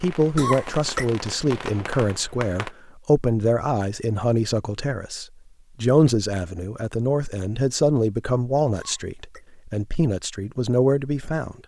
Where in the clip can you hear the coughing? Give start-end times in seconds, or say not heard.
0.2-1.1, 8.8-9.4.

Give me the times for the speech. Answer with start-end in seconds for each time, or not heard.
0.0-11.6.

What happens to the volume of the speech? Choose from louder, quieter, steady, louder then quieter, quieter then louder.
steady.